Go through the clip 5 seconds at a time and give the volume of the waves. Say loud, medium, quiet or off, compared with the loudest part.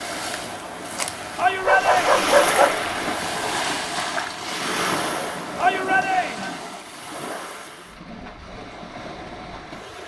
loud, medium.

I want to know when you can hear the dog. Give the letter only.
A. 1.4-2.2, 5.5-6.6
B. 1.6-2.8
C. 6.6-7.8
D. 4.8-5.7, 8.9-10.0
B.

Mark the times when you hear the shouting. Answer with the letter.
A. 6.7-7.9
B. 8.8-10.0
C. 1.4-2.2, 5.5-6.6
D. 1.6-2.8
C.